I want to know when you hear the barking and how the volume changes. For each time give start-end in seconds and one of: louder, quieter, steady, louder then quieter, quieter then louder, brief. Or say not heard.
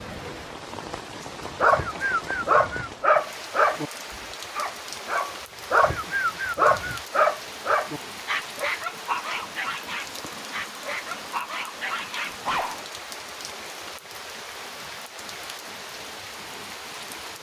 1.6-3.9 brief
4.5-12.8 quieter.